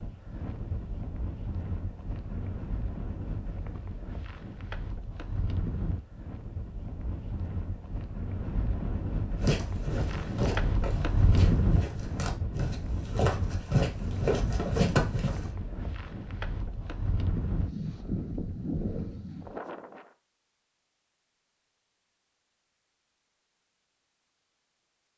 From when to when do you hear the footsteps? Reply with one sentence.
You can hear the footsteps from 9.4 to 15.4 s.